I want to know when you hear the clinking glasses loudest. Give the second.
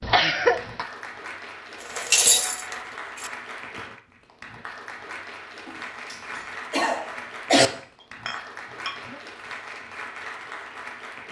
2 s.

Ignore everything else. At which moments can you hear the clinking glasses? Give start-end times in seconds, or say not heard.
1.8-3.3, 8.0-9.2.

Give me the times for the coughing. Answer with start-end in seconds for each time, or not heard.
0.0-0.8, 5.7-7.7.